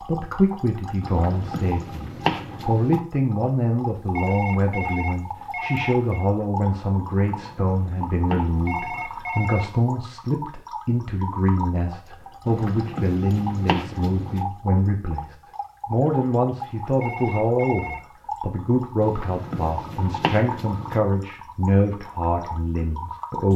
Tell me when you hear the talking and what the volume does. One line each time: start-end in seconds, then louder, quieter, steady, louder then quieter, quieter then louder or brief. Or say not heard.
0.0-23.5 steady.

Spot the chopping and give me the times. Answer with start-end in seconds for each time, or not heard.
1.0-3.0, 7.2-9.1, 12.4-14.4, 19.0-21.0.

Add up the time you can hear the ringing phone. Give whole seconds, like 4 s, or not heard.
5 s.